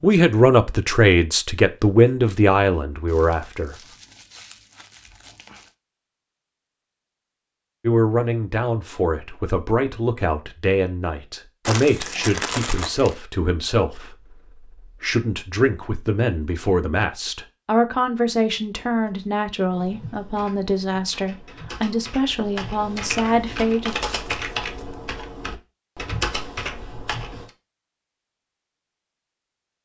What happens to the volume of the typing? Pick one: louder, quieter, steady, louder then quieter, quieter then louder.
louder.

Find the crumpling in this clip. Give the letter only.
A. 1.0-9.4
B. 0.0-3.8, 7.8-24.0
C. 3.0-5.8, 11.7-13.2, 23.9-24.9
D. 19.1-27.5
C.